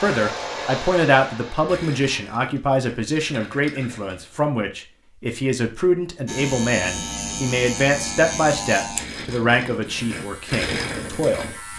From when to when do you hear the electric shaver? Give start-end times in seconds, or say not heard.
6.2-11.7.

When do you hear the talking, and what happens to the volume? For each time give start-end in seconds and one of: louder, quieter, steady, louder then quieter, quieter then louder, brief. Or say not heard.
0.0-11.7 steady.